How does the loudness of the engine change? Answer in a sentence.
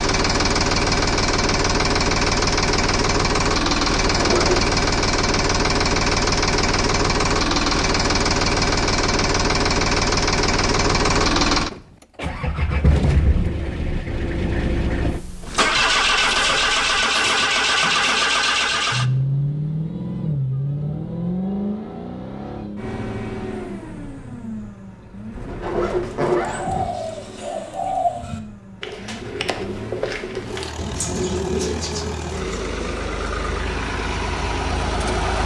The volume of the engine goes down.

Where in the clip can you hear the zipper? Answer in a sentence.
You can hear the zipper from 4.1 to 4.7 s, from 16.2 to 18.2 s and from 25.3 to 26.9 s.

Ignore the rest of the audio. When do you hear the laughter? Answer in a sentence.
The laughter can't be heard in this clip.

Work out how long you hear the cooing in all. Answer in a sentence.
The cooing can be heard for 7 seconds in total.